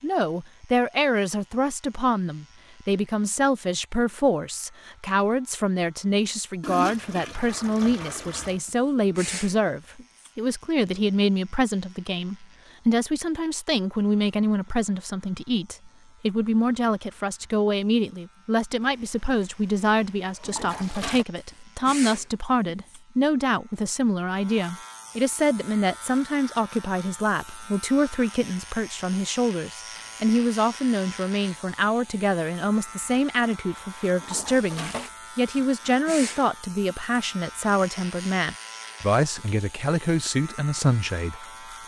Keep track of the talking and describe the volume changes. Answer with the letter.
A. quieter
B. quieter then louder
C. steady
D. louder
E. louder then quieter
C.